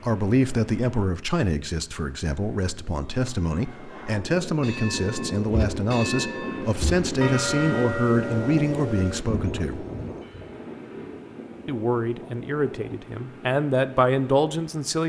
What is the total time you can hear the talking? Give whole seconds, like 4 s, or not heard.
13 s.